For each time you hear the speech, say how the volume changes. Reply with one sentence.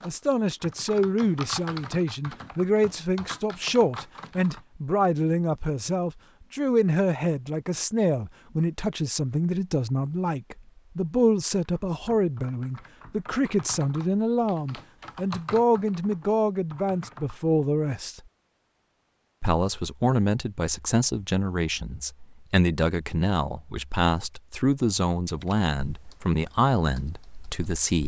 You can hear the speech from 0.0 to 18.2 s, at a steady volume; and from 19.4 to 28.0 s, at a steady volume.